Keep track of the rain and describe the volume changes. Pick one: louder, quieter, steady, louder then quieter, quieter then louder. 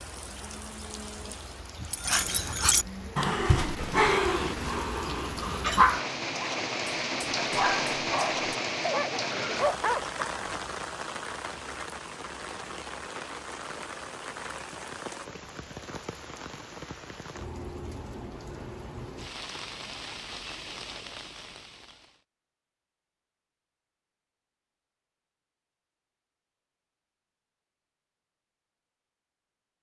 louder then quieter.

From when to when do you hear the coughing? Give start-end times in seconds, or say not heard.
9.3-9.8.